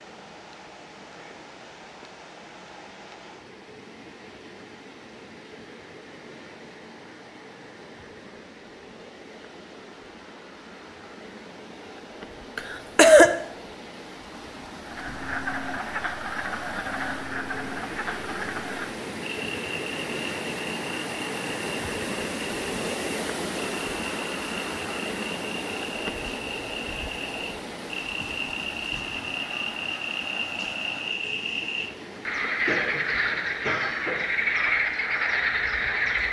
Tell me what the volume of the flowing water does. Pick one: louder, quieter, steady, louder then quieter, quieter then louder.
louder then quieter.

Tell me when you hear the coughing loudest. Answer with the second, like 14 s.
13 s.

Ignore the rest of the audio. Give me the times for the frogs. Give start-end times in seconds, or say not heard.
14.8-36.2.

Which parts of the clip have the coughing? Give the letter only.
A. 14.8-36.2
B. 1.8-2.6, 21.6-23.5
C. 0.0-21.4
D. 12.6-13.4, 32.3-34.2
D.